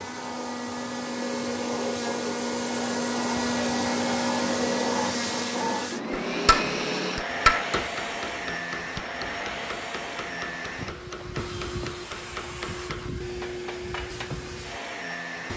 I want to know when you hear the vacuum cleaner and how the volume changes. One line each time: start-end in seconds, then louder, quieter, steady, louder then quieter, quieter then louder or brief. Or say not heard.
0.0-15.5 quieter.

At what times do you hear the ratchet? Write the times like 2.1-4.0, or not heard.
not heard.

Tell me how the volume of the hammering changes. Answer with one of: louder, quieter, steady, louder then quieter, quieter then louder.
quieter.